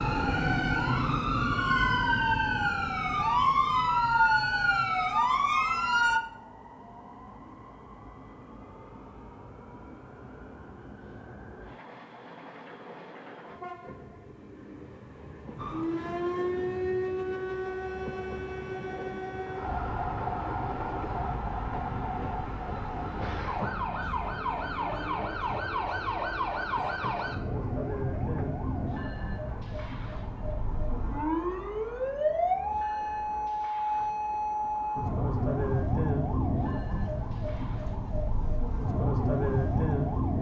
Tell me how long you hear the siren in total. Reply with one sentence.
The siren can be heard for 31 seconds in total.